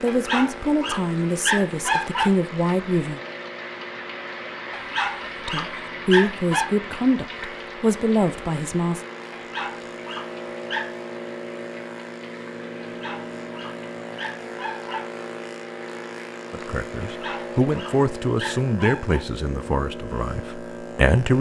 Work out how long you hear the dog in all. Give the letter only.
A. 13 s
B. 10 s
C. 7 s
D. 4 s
B.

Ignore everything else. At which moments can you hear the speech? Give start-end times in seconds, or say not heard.
0.0-3.2, 5.5-9.0, 16.5-21.3.